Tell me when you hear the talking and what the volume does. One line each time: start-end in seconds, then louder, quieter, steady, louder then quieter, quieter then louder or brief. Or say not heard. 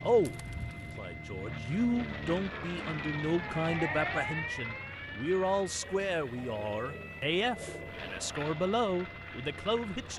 0.0-10.1 steady.